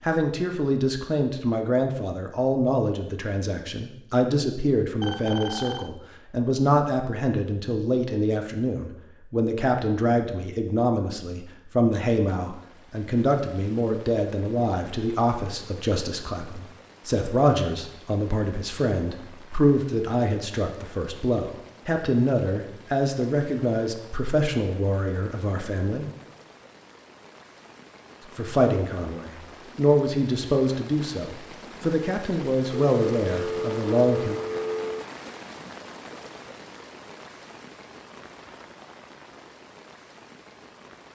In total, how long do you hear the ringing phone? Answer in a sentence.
You can hear the ringing phone for 3 seconds altogether.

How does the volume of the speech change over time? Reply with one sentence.
The loudness of the speech stays about the same.